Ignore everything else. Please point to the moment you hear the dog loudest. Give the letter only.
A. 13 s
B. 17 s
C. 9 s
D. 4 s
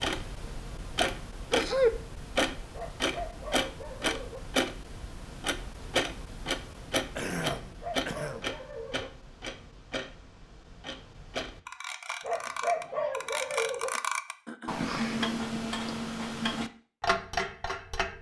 A.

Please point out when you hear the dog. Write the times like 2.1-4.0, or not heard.
2.7-4.4, 7.6-9.1, 12.2-13.9.